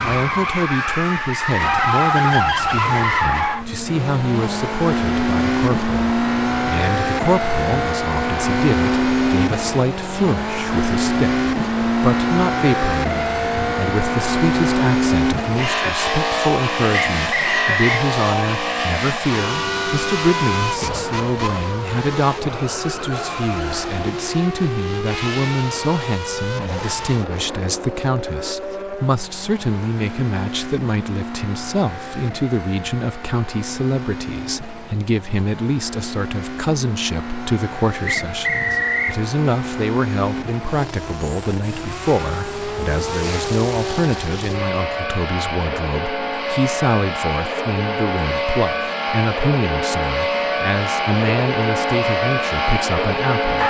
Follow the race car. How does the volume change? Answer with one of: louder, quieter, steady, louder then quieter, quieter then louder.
quieter then louder.